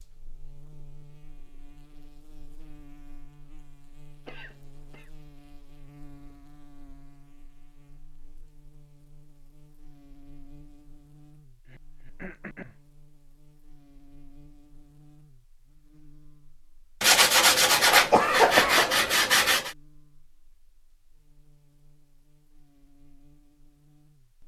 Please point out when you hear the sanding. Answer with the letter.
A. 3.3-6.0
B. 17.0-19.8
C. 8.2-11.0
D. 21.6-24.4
B.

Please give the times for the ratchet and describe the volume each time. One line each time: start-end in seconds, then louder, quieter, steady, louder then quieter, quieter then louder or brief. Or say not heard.
not heard.